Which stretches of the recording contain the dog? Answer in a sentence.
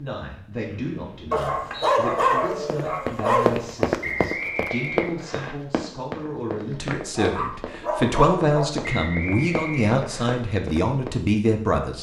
You can hear the dog from 1.3 to 3.6 s and from 7.2 to 8.7 s.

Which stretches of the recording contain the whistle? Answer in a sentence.
The whistle can be heard from 0.7 to 1.9 s, from 4.0 to 5.5 s and from 8.8 to 10.3 s.